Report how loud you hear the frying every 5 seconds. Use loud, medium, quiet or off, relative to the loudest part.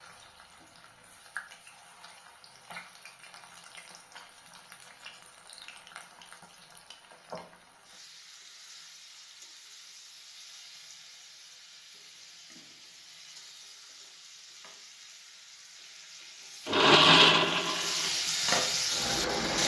quiet, quiet, quiet, loud.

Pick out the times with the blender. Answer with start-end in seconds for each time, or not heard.
16.6-19.6.